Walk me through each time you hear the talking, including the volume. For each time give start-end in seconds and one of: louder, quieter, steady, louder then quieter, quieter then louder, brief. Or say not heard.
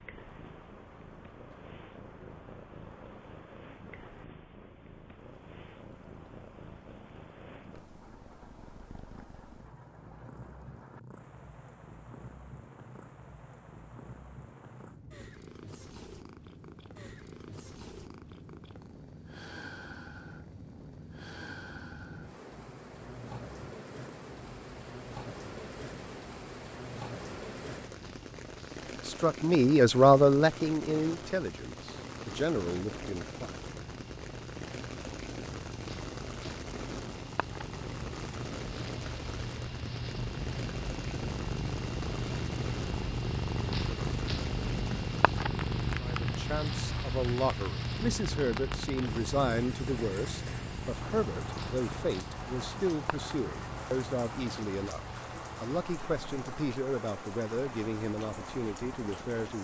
29.0-33.6 quieter
46.0-59.5 steady.